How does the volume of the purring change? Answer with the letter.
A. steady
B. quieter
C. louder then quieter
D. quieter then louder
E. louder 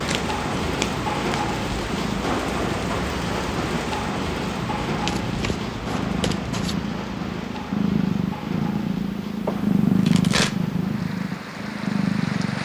E.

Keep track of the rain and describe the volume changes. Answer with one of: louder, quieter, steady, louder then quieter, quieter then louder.
quieter.